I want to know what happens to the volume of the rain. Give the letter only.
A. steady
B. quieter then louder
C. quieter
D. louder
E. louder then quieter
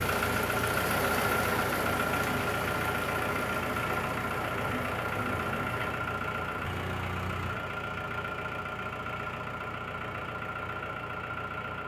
C.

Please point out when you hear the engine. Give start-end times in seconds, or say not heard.
0.0-11.8.